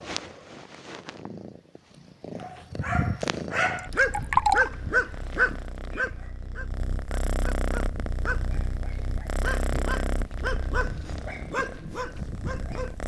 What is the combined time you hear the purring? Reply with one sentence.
You can hear the purring for 13 seconds altogether.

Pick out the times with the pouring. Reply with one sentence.
You can hear the pouring from 3.8 to 4.8 s.